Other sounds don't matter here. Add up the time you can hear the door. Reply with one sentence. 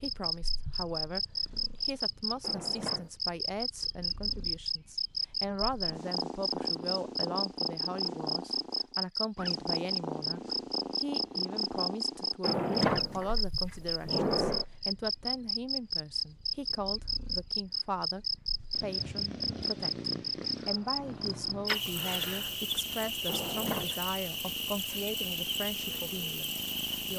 The door can be heard for 4 seconds in total.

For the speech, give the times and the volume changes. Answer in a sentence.
You can hear the speech briefly from 0.0 to 1.2 s; and from 1.9 to 27.1 s, at a steady volume.